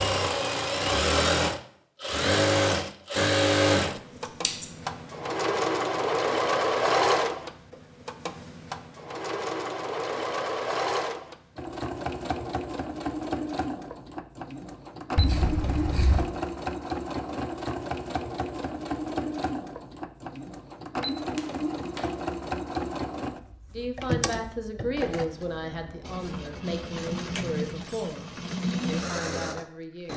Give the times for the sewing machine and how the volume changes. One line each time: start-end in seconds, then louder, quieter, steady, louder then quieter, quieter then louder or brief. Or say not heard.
0.0-30.1 quieter.